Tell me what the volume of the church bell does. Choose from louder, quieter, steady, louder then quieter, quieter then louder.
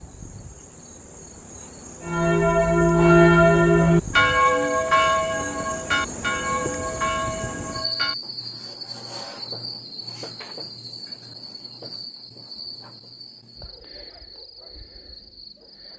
quieter.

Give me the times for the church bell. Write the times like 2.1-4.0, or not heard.
2.0-8.2.